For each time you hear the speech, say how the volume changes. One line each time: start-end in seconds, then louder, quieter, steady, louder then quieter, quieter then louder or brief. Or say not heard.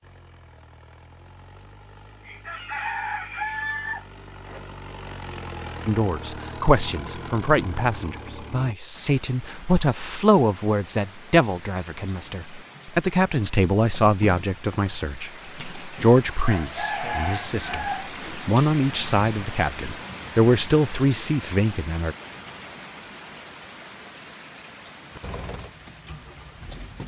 5.8-22.1 steady.